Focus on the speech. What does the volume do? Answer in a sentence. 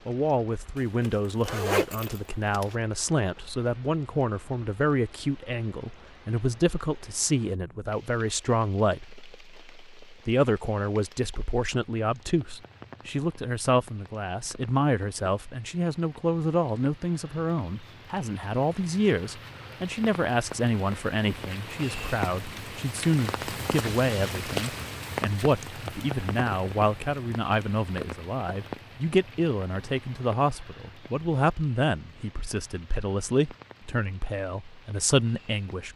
The loudness of the speech stays about the same.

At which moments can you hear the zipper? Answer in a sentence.
The zipper can be heard from 0.8 to 2.8 s.